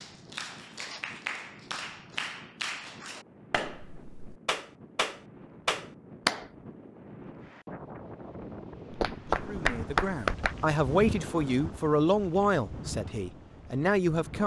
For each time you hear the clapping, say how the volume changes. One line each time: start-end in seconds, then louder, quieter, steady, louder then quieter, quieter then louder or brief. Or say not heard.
0.0-6.5 louder
8.9-10.6 brief.